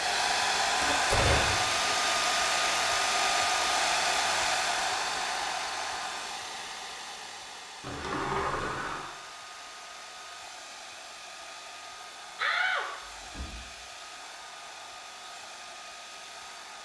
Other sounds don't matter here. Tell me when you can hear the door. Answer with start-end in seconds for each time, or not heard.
0.8-1.7, 7.8-9.1, 12.3-13.6.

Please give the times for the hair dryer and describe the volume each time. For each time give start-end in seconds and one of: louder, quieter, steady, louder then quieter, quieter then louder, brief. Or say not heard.
0.0-16.8 quieter.